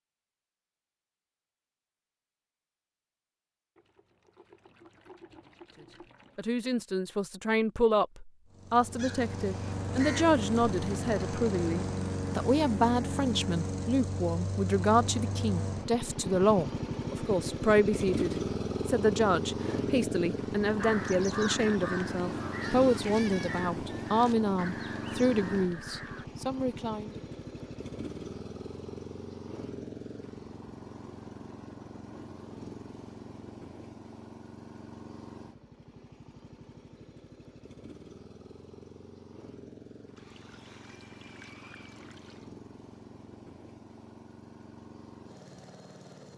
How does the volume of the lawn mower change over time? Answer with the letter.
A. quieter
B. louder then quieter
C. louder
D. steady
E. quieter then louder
A.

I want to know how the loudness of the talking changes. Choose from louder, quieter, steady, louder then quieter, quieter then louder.
steady.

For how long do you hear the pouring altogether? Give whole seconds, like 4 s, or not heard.
5 s.